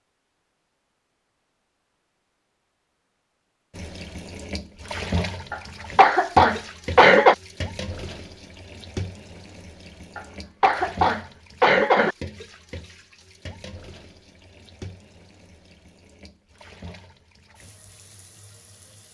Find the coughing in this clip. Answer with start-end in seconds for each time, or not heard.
5.5-7.3, 10.2-12.2.